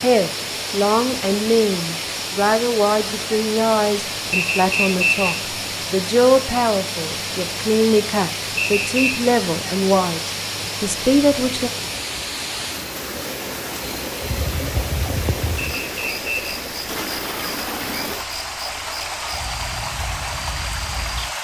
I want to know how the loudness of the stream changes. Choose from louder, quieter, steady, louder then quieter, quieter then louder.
steady.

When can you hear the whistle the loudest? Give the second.
5 s.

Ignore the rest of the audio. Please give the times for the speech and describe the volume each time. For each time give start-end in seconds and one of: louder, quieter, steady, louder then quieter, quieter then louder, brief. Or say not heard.
0.0-11.7 steady.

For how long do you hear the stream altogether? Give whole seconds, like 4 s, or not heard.
21 s.